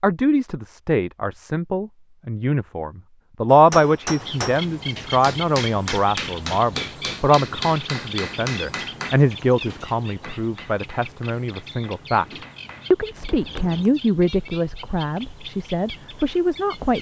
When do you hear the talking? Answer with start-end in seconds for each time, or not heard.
0.0-12.2, 12.9-16.9.